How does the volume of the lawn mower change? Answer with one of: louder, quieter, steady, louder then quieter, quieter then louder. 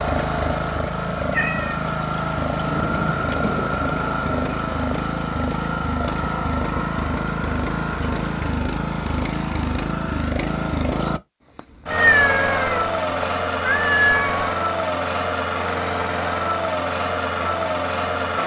steady.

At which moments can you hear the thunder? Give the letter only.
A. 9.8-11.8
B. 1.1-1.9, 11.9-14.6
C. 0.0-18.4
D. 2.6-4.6
D.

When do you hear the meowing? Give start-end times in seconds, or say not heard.
1.1-1.9, 11.9-14.6.